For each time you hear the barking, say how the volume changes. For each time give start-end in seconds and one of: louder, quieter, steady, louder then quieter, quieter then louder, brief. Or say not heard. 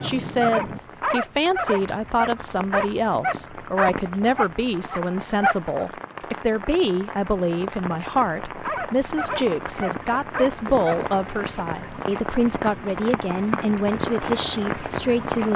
0.0-5.9 steady
8.6-11.0 brief.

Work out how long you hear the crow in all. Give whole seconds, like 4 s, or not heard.
not heard.